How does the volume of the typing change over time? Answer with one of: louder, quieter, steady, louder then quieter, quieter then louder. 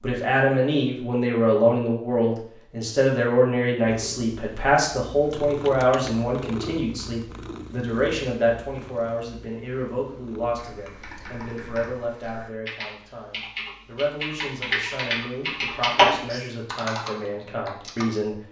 louder then quieter.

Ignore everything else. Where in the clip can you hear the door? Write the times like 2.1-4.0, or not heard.
not heard.